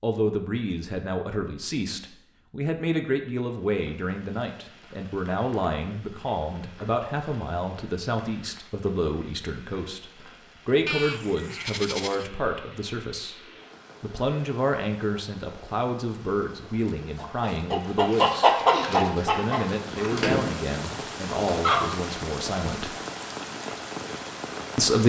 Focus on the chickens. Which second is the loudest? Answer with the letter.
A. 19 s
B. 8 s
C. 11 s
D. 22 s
A.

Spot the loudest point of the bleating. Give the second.
11 s.